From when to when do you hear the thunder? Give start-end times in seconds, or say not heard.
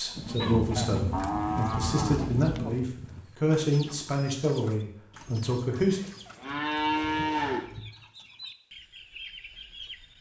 0.1-2.6.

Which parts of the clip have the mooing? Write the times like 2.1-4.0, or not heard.
0.8-2.8, 5.2-7.7.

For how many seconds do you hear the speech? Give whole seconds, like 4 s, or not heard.
6 s.